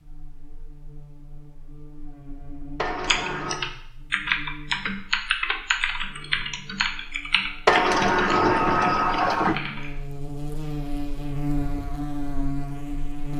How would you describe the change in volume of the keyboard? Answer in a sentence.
The volume of the keyboard goes down.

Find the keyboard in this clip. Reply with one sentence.
The keyboard can be heard from 3.0 to 9.9 s.